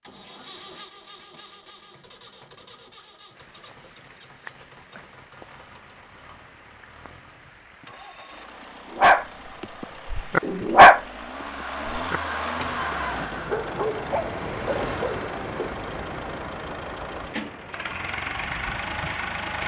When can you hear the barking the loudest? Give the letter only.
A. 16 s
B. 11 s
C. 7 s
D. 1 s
B.